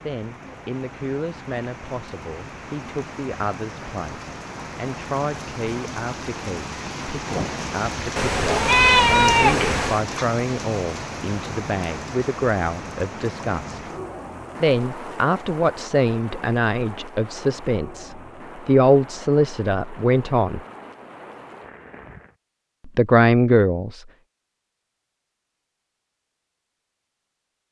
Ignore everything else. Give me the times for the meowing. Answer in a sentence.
You can hear the meowing from 8.2 to 10.0 s.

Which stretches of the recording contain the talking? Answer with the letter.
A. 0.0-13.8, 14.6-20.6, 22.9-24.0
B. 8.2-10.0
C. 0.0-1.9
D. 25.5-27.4
A.